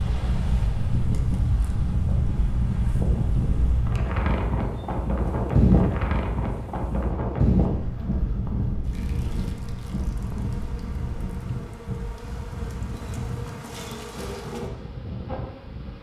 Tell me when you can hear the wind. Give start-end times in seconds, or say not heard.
0.0-15.9.